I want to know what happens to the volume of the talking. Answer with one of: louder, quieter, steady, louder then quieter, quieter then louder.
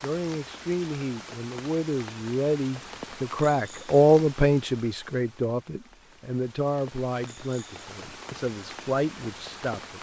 louder then quieter.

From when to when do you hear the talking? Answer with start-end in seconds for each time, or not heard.
0.0-9.9.